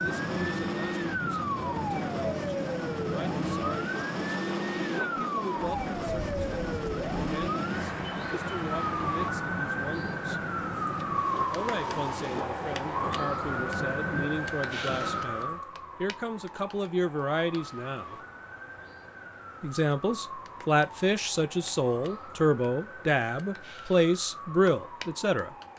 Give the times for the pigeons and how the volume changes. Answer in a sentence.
You can't hear the pigeons here.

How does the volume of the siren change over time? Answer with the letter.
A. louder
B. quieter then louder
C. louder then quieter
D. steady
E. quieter
E.